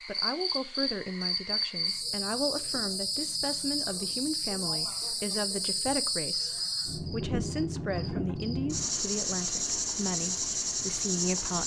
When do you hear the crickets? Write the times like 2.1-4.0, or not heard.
0.0-11.6.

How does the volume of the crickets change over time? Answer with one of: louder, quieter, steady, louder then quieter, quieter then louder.
steady.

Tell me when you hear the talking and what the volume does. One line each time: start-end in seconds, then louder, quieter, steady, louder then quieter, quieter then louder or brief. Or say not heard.
0.1-11.6 steady.